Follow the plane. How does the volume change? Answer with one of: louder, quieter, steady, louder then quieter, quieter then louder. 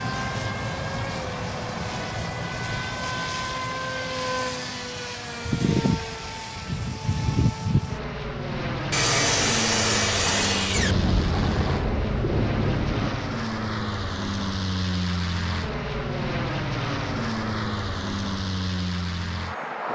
steady.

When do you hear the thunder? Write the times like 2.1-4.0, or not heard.
10.8-13.2.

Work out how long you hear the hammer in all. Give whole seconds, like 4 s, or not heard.
not heard.